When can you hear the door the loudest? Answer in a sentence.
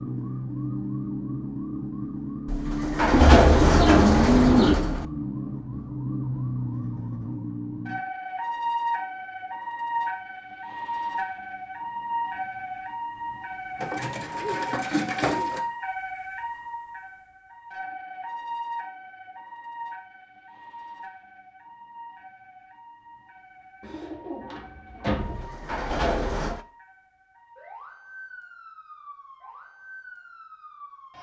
The volume of the door peaks at 3 seconds.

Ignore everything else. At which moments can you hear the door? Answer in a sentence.
The door can be heard from 2.5 to 5.0 s and from 25.1 to 26.6 s.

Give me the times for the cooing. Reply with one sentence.
The cooing can be heard from 3.1 to 4.8 s, from 13.8 to 15.6 s and from 23.8 to 25.4 s.